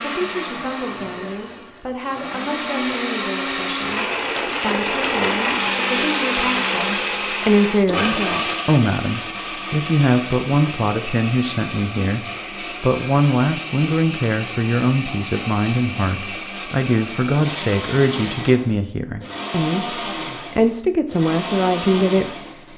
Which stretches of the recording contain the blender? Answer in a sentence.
The blender can be heard from 0.0 to 22.7 s.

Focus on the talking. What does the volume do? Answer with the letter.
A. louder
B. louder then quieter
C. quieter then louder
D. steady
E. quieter
A.